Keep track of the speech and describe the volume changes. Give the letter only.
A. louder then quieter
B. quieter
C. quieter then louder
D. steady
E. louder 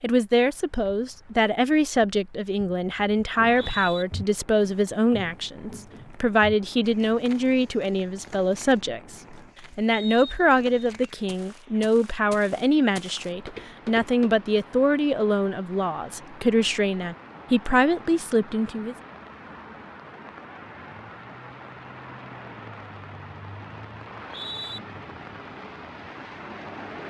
D.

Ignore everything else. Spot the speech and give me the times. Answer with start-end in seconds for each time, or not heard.
0.0-9.2, 9.8-18.9.